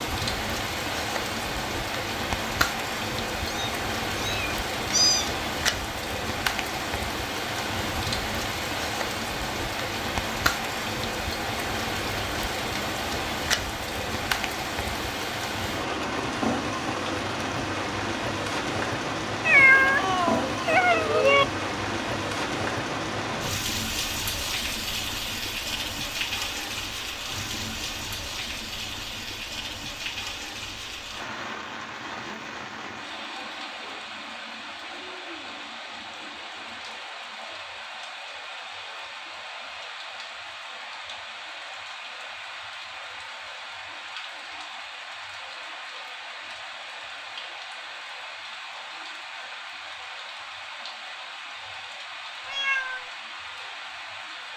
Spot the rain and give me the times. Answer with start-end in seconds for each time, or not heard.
0.0-54.5.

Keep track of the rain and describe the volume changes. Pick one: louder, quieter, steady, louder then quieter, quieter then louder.
quieter.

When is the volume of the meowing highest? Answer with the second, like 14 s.
20 s.